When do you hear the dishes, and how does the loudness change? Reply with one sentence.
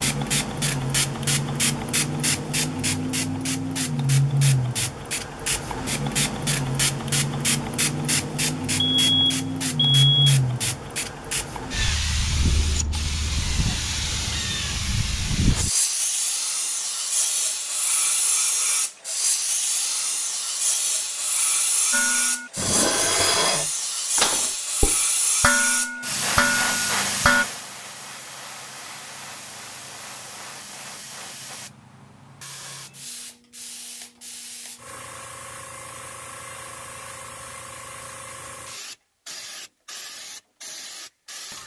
The dishes can be heard from 21.9 to 27.4 s, at a steady volume.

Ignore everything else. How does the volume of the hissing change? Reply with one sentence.
The loudness of the hissing goes down.